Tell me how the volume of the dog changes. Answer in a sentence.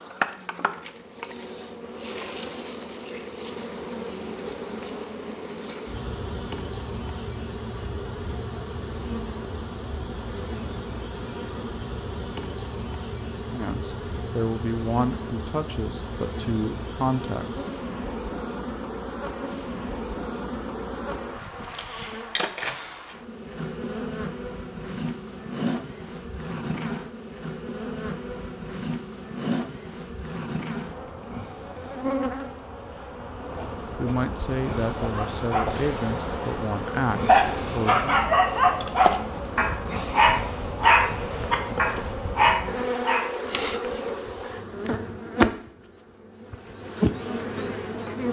The loudness of the dog goes up.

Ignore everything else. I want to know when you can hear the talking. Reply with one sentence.
You can hear the talking from 13.4 to 17.6 s and from 34.0 to 38.2 s.